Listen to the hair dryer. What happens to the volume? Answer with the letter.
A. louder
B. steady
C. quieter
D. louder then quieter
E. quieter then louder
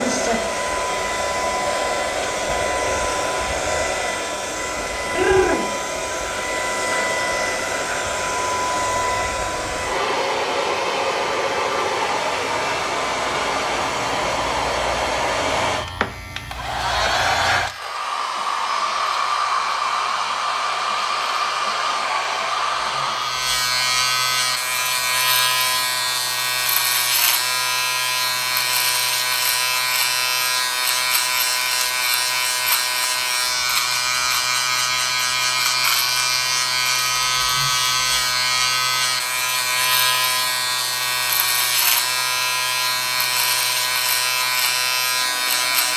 C.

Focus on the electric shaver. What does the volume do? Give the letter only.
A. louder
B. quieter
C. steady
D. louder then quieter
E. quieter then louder
A.